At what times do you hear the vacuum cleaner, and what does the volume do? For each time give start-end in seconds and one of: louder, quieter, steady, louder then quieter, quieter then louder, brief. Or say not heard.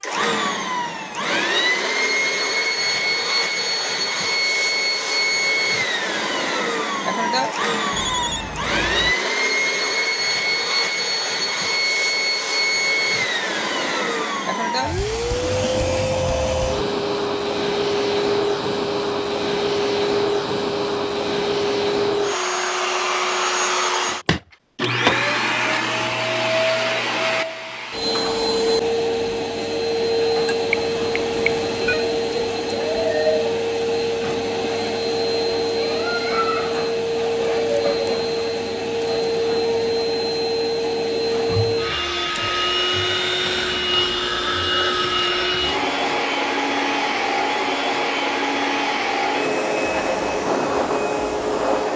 0.0-51.9 steady.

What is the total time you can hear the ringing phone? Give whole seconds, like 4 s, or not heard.
5 s.